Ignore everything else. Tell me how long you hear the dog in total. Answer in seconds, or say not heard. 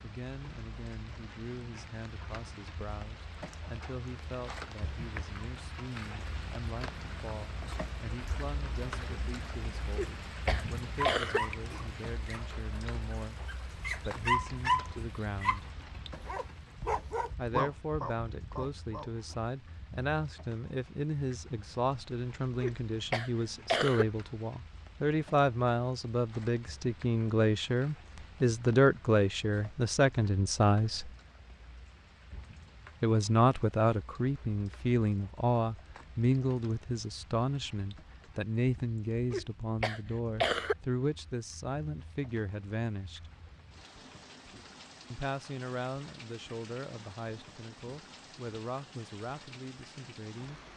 8 s.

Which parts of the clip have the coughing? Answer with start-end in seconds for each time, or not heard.
9.9-11.4, 22.6-24.1, 39.3-40.8.